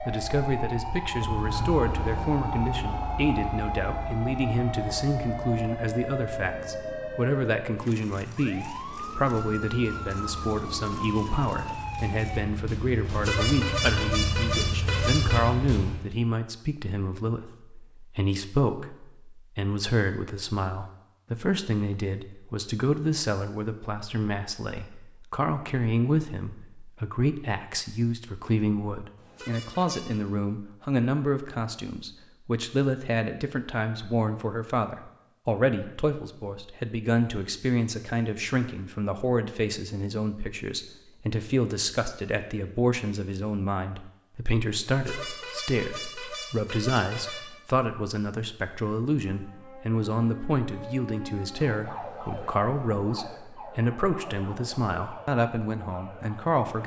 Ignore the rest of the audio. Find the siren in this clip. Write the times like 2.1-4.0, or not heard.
0.0-12.4, 49.2-56.8.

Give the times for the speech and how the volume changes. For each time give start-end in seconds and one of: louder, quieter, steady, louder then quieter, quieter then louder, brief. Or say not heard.
0.1-56.8 steady.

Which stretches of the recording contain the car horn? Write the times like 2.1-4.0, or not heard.
13.1-15.5, 29.1-30.2, 44.9-47.5.